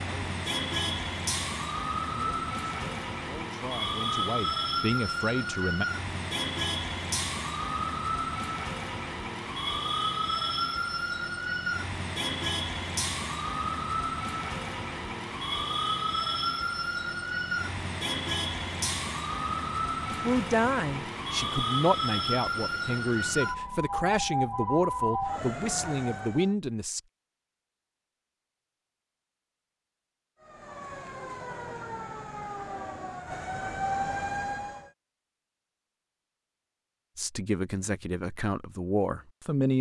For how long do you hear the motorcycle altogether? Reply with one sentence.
You can't hear the motorcycle here.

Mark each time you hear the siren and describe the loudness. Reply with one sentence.
The siren can be heard from 0.0 to 26.6 s, at a steady volume; and from 30.4 to 34.9 s, getting louder.